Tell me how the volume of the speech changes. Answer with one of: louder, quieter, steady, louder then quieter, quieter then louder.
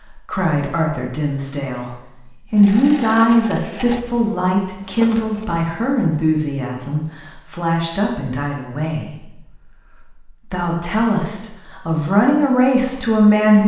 quieter then louder.